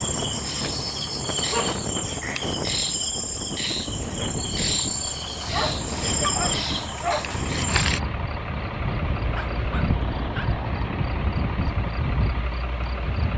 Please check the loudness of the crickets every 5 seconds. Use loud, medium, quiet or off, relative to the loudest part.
loud, loud, quiet.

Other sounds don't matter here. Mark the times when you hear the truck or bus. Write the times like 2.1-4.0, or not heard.
0.0-13.3.